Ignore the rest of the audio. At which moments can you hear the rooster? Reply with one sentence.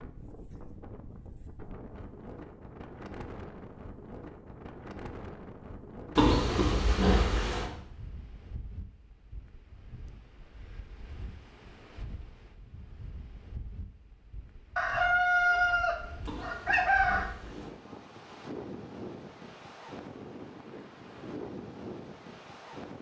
You can hear the rooster from 14.8 to 17.3 s.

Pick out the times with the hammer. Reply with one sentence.
The hammer can't be heard in this clip.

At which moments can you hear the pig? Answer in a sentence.
You can hear the pig from 6.2 to 7.7 s and from 16.2 to 17.8 s.